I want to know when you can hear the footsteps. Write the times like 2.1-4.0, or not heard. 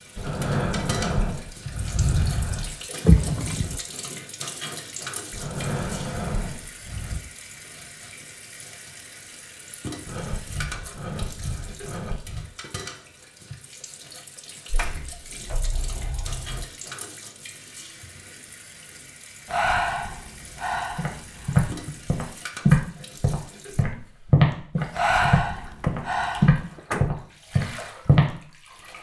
20.9-28.3.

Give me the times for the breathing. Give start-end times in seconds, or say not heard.
0.1-2.8, 5.3-7.2, 10.1-12.5, 14.7-15.2, 19.4-21.9, 24.9-26.5.